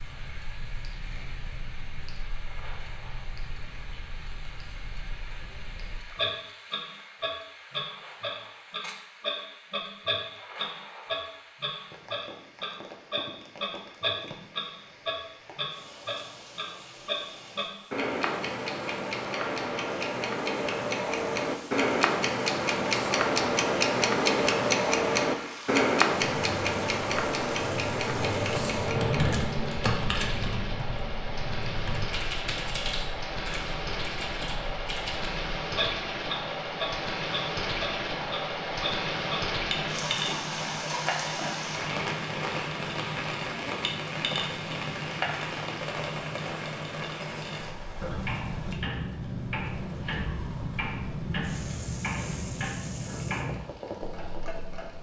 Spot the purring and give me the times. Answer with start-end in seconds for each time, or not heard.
not heard.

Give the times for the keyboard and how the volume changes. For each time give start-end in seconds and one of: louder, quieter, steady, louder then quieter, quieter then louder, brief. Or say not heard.
26.4-35.4 louder then quieter.